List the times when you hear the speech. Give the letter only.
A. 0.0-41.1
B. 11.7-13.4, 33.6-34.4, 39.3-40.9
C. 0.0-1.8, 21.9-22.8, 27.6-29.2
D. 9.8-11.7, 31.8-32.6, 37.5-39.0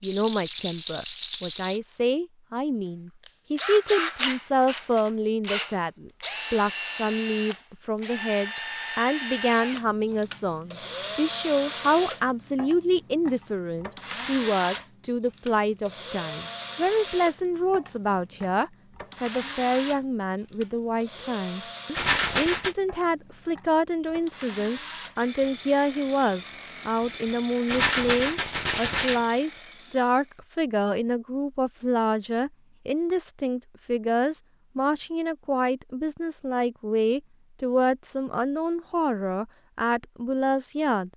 A.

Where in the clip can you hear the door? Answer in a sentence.
You can't hear the door here.